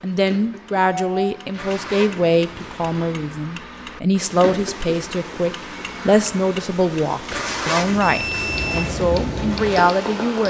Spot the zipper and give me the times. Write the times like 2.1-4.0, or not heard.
1.5-3.1, 7.3-8.9.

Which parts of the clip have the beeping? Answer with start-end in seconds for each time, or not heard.
0.9-1.3, 8.0-8.8.